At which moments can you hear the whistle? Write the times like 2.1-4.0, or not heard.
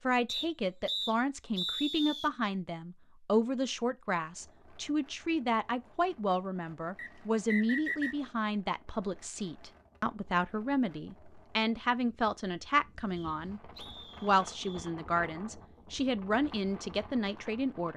0.2-2.3, 7.0-8.2, 13.2-14.9.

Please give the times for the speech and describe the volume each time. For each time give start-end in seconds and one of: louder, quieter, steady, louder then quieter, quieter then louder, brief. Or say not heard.
0.0-17.9 steady.